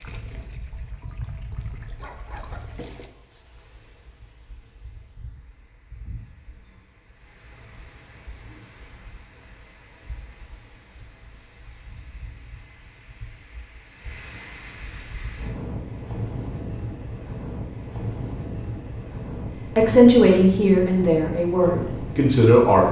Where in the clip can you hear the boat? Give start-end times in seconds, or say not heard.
0.0-3.1.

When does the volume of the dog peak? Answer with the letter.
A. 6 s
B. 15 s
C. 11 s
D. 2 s
D.